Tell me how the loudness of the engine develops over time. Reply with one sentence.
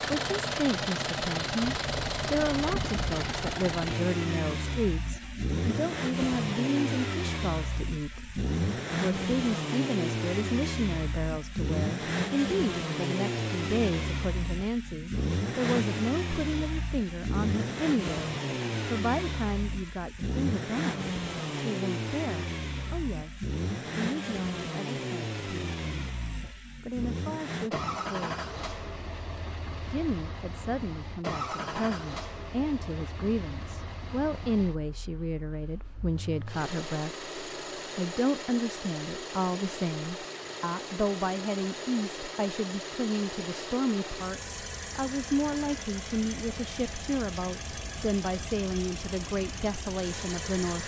The loudness of the engine goes down.